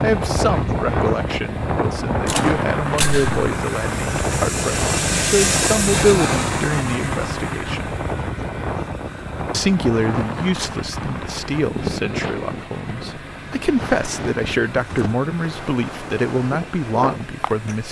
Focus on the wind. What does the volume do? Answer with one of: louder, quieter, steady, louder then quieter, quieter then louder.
quieter.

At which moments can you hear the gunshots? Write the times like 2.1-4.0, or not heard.
2.2-3.5.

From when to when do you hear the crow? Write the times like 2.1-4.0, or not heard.
not heard.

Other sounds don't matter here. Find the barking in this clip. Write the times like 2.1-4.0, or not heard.
not heard.